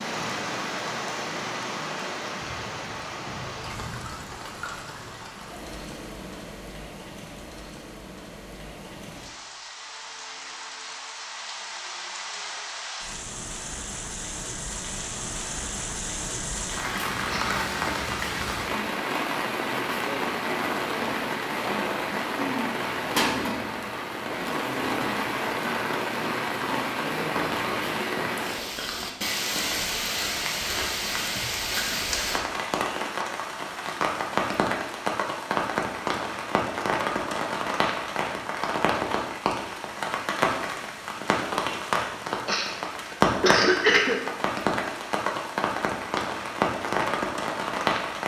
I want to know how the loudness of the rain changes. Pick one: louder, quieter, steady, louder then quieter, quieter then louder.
louder.